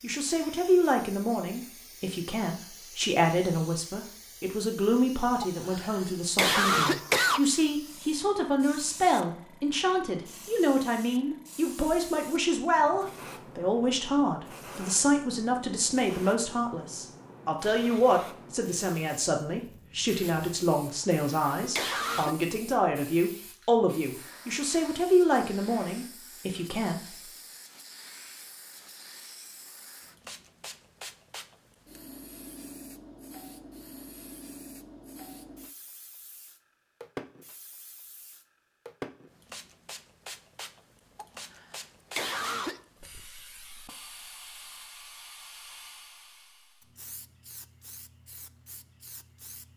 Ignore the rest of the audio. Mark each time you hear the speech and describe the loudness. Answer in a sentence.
You can hear the speech from 0.0 to 27.3 s, at a steady volume.